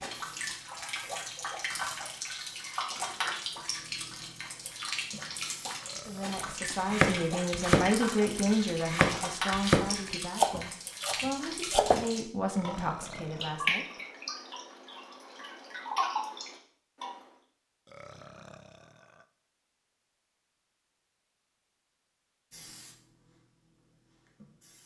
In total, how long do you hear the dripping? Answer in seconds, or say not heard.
17 s.